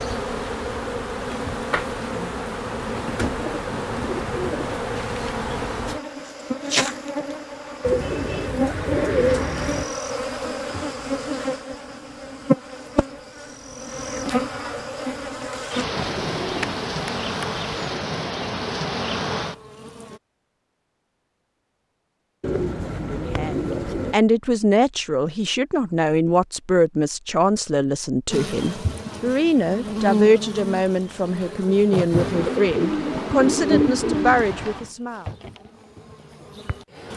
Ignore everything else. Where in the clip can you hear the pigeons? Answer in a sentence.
You can hear the pigeons from 2.8 to 4.8 s, from 7.8 to 9.8 s, from 15.9 to 17.9 s, from 22.4 to 24.1 s and from 32.1 to 34.9 s.